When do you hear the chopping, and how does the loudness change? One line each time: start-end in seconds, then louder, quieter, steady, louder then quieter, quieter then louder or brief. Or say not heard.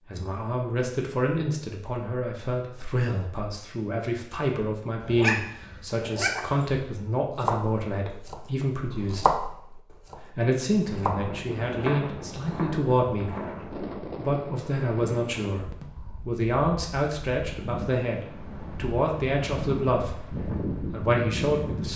7.3-13.8 louder then quieter.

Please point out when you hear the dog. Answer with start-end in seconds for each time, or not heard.
5.0-6.8.